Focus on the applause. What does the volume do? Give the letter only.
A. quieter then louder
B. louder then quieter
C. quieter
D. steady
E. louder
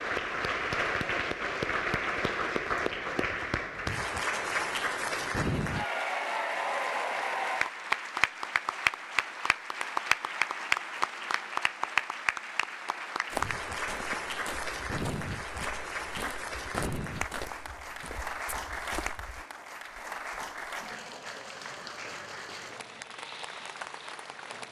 C.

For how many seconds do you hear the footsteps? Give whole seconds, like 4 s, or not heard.
6 s.